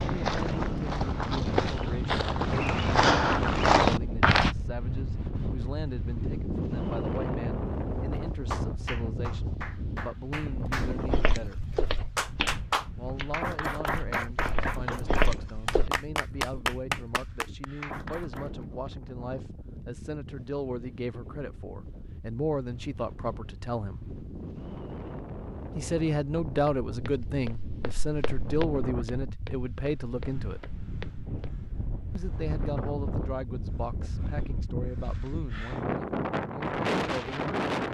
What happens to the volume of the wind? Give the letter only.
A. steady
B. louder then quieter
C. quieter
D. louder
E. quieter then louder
E.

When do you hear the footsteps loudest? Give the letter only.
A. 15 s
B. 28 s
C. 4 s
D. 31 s
C.